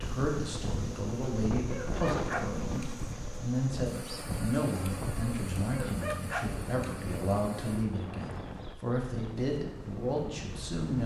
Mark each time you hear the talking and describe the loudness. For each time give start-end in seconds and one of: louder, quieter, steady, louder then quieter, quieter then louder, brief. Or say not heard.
0.0-11.0 steady.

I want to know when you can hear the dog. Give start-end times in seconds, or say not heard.
1.7-3.0, 5.7-7.0.